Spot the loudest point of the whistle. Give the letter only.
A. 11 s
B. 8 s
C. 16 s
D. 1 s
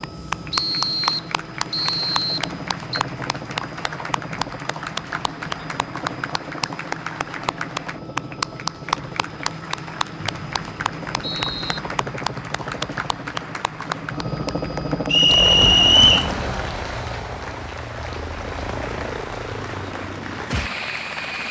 C.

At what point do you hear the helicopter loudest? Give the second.
16 s.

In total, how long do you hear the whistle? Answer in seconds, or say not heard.
5 s.